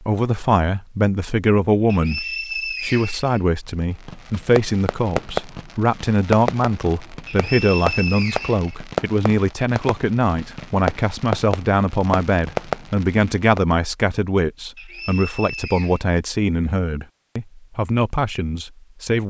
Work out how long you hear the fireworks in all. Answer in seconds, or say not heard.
10 s.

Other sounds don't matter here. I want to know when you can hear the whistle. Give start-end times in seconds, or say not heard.
1.9-3.4, 7.2-8.8, 14.8-16.1.